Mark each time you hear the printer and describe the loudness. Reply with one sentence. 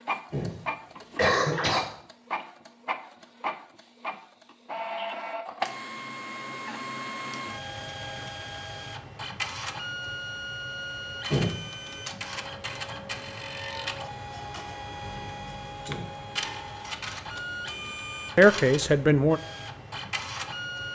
The printer can be heard from 0.0 to 20.9 s, at a steady volume.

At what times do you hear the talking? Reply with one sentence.
You can hear the talking from 18.4 to 19.4 s.